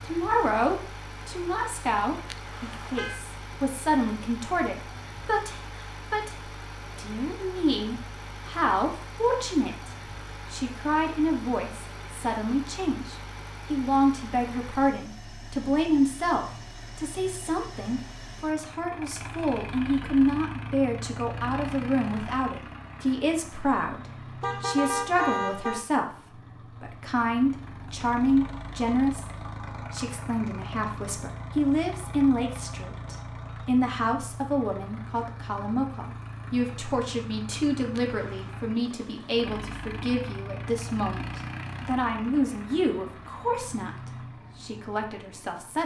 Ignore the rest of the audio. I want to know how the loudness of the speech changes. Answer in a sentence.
The loudness of the speech stays about the same.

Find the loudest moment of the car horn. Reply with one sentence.
The loudest moment of the car horn is at 25 seconds.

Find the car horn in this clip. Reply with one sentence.
You can hear the car horn from 2.2 to 3.2 s, from 24.4 to 25.9 s and from 38.0 to 38.5 s.